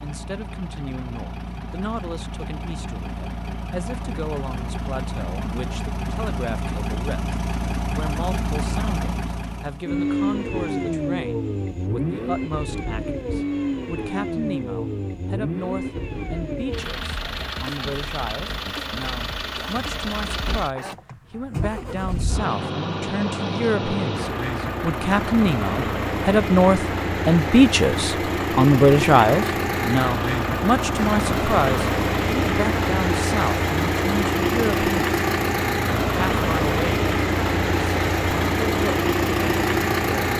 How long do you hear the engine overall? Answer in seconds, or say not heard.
40 s.